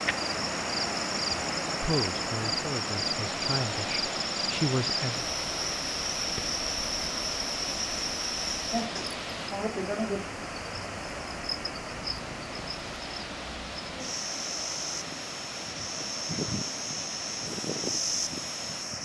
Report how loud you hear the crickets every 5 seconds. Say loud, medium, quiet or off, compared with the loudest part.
loud, loud, medium, loud.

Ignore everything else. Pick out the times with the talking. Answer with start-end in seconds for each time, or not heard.
1.6-5.2.